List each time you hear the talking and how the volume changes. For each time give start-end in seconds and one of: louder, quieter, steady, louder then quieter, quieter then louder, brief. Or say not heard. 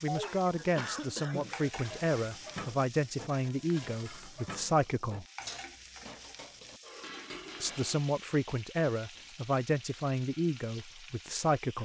0.0-5.2 steady
7.6-11.8 quieter.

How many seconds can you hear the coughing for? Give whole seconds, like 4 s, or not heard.
2 s.